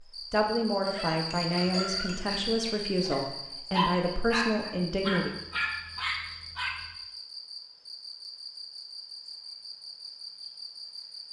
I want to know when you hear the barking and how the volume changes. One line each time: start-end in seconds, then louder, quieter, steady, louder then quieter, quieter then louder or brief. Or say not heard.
0.8-6.8 louder.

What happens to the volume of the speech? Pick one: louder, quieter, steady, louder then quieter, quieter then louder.
steady.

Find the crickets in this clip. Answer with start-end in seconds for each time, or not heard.
0.0-11.2.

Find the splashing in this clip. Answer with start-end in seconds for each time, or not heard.
not heard.